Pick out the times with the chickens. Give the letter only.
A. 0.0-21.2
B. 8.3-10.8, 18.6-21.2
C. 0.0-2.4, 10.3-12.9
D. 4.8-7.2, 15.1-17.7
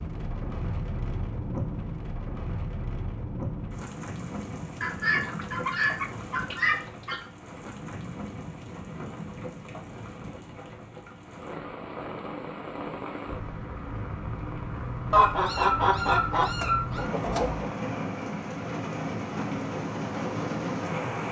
D.